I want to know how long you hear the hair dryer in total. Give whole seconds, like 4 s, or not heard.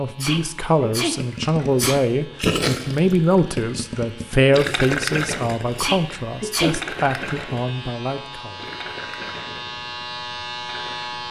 not heard.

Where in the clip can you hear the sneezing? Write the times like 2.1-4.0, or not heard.
0.1-2.0, 5.7-6.8.